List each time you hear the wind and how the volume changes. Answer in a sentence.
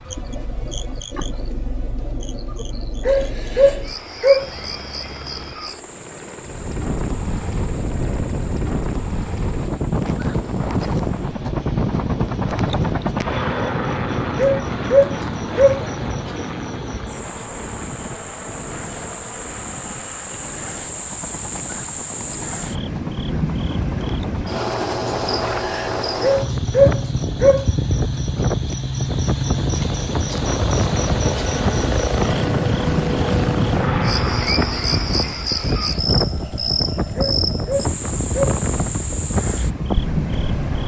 You can hear the wind from 6.5 to 40.8 s, getting quieter then louder.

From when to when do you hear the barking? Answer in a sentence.
The barking can be heard from 3.0 to 4.5 s, from 14.3 to 15.8 s, from 26.2 to 27.6 s and from 37.1 to 38.6 s.